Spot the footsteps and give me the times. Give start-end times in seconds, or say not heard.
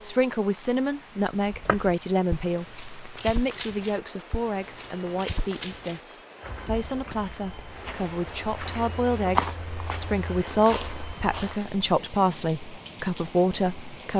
1.4-11.6.